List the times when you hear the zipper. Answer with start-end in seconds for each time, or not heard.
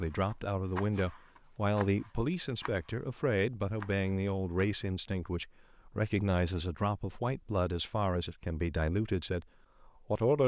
not heard.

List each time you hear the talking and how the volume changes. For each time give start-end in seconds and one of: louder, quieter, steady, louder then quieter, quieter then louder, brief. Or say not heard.
0.0-10.4 steady.